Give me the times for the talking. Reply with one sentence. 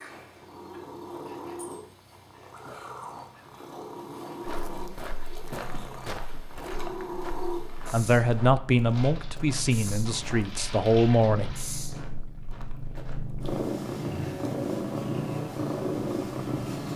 You can hear the talking from 7.9 to 11.6 s.